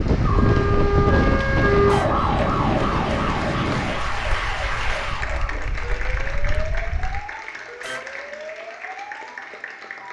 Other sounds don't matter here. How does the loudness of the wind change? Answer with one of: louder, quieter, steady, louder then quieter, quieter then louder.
quieter.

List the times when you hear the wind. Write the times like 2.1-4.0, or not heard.
0.0-7.2.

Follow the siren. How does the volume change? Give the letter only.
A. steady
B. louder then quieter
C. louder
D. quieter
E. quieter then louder
D.